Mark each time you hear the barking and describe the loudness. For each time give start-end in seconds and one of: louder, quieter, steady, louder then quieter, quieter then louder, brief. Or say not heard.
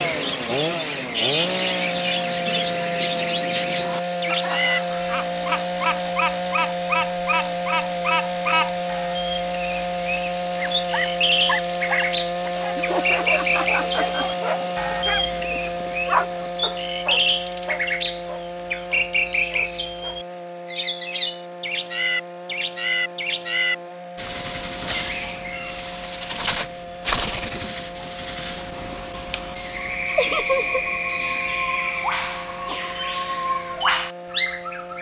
10.6-20.2 quieter.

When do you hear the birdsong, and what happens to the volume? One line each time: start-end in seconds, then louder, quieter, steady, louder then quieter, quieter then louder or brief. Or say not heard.
0.0-34.9 steady.